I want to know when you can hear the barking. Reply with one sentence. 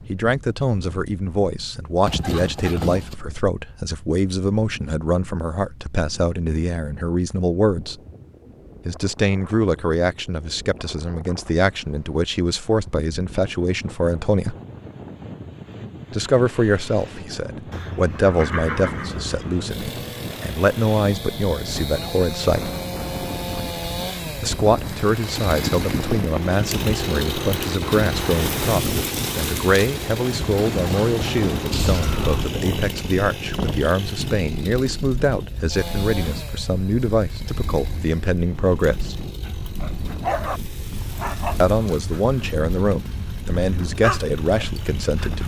The barking can be heard from 39.5 to 45.4 s.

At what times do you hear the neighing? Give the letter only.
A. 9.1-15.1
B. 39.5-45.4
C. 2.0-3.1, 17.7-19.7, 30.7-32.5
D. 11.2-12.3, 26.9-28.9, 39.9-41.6
C.